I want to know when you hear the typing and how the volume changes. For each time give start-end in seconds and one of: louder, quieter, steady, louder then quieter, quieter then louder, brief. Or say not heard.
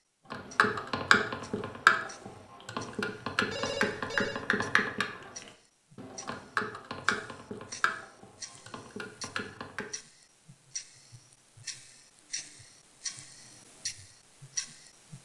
0.3-9.9 quieter.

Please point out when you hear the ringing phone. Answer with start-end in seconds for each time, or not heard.
3.5-4.5.